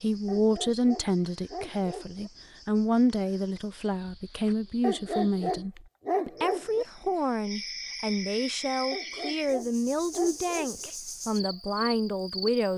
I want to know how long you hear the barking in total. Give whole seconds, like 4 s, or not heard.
6 s.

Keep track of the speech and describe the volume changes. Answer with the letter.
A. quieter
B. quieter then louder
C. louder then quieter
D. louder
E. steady
E.